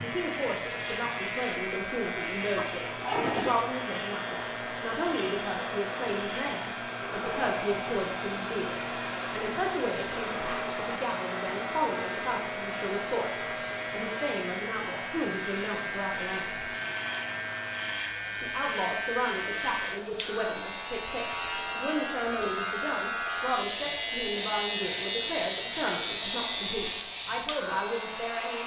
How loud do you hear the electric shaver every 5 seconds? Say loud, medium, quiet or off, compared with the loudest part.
medium, medium, medium, loud, loud, loud.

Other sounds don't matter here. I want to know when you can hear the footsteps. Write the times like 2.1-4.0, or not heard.
not heard.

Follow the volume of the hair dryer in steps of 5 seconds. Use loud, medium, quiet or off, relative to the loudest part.
loud, loud, loud, medium, medium, medium.